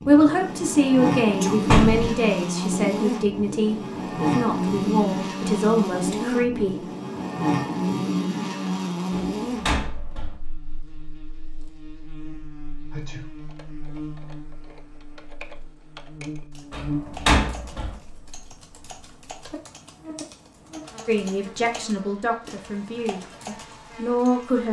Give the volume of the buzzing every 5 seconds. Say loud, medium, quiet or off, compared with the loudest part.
loud, loud, quiet, medium, quiet.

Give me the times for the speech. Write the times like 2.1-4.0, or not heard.
0.1-6.8, 21.1-24.6.